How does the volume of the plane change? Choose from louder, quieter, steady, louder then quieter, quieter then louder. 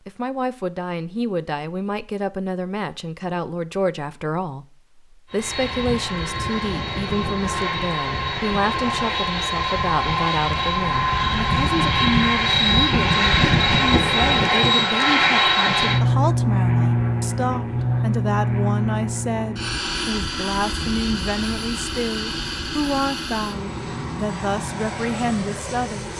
louder then quieter.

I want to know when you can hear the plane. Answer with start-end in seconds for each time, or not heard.
5.3-26.1.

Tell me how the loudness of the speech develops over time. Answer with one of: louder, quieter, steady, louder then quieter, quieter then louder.
steady.